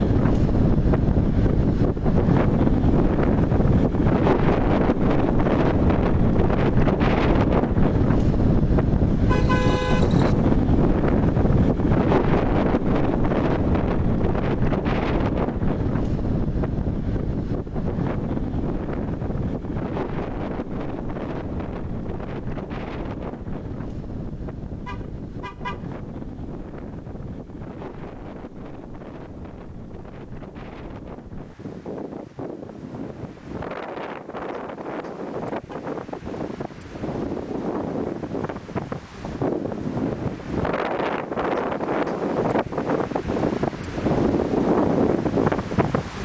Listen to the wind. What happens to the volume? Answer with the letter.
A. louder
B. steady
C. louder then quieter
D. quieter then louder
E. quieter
D.